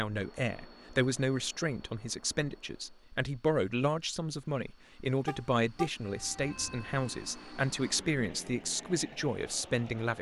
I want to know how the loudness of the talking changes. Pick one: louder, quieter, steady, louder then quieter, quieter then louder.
steady.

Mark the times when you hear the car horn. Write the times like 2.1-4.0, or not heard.
5.2-5.9.